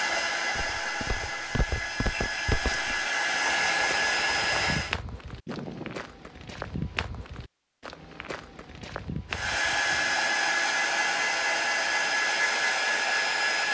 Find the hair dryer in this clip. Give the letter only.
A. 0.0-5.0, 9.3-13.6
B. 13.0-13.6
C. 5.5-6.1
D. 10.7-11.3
A.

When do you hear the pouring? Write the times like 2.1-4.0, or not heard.
5.5-6.1.